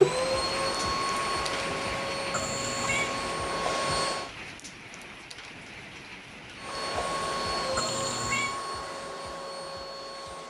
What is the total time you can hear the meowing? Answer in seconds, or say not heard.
2 s.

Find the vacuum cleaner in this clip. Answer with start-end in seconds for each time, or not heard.
0.0-4.3, 6.5-10.4.